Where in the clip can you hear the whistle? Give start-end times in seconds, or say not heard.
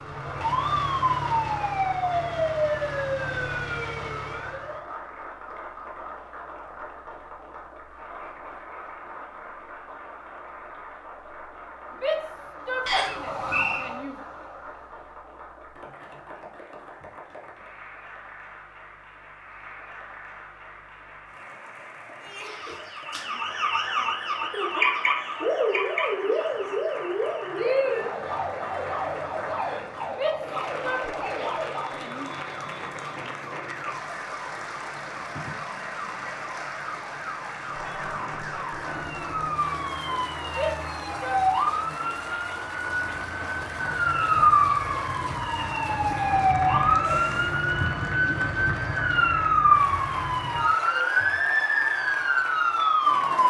12.8-13.8.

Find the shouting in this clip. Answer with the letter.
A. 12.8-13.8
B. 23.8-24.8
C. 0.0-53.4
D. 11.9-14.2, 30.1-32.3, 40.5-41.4
D.